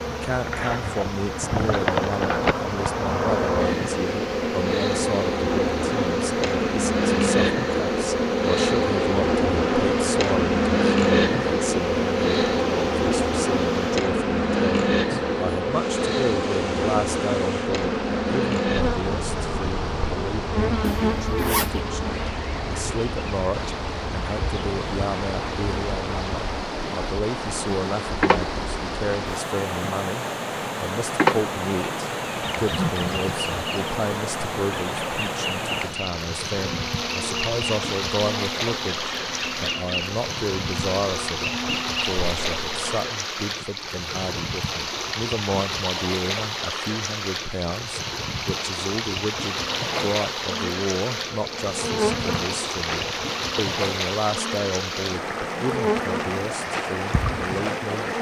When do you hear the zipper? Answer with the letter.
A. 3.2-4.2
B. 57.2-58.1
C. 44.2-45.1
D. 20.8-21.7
D.